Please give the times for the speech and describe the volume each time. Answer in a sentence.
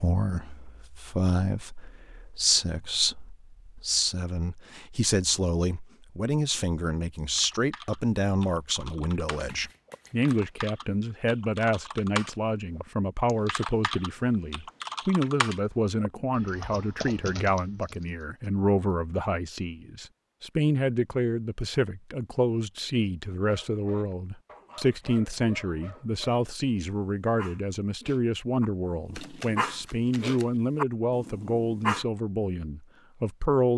The speech can be heard from 0.0 to 33.7 s, at a steady volume.